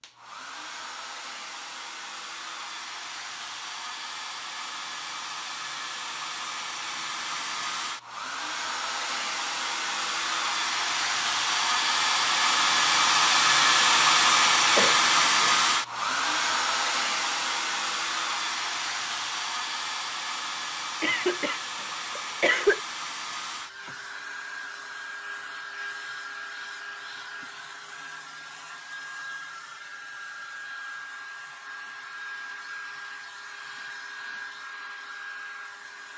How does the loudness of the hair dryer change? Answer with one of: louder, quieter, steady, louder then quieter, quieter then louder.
louder then quieter.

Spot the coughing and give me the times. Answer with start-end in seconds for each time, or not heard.
14.8-15.6, 21.0-22.8.